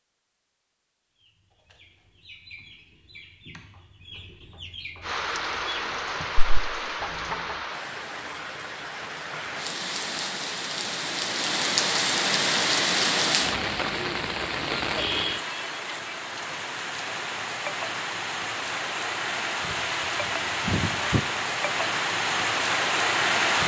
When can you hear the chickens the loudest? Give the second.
7 s.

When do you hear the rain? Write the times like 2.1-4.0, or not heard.
5.0-23.6.